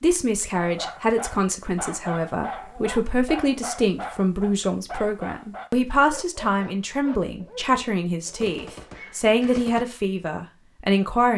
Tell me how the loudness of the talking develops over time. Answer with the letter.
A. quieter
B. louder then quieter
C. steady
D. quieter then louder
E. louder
C.